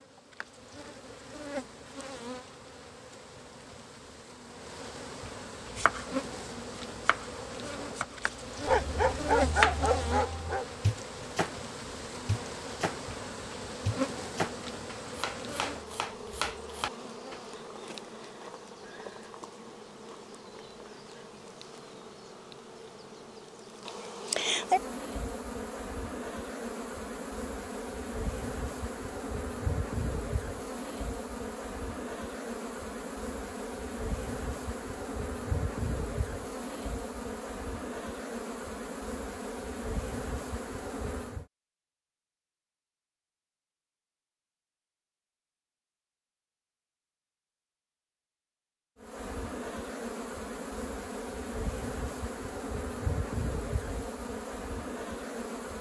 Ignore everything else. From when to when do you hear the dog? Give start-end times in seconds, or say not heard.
8.7-10.7.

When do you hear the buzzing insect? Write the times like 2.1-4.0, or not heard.
0.0-41.5, 49.0-55.7.